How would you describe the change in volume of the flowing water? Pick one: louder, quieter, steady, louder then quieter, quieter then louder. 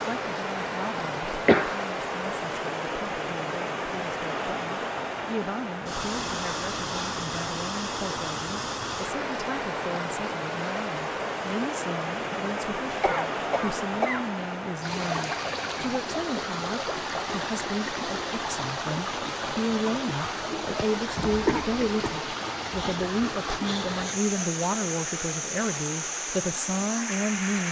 steady.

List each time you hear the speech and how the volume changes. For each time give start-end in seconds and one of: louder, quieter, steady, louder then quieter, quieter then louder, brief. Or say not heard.
0.0-27.6 louder.